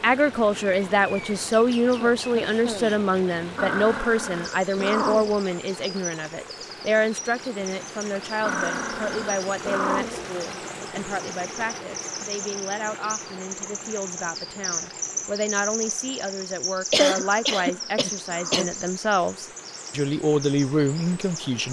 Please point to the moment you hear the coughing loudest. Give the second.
17 s.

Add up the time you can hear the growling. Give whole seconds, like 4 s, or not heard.
5 s.